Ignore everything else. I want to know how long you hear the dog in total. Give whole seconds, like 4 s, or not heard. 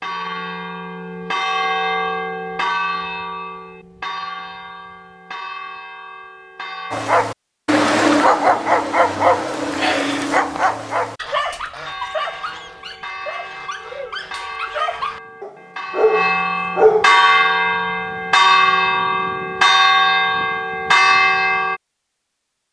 10 s.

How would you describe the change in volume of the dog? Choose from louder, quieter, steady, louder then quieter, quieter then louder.
quieter then louder.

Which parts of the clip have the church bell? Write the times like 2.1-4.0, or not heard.
0.0-7.2, 11.8-21.8.